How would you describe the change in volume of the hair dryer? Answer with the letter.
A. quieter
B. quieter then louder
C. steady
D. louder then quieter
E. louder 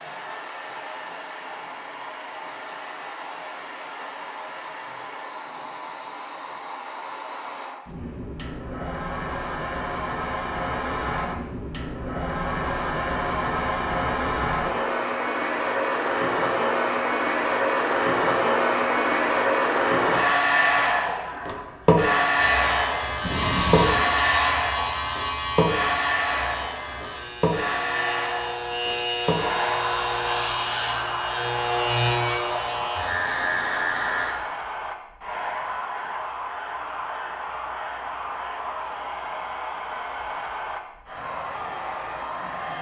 D.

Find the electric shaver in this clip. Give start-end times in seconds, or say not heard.
22.4-34.4.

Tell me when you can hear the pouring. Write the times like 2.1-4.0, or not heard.
23.2-24.1.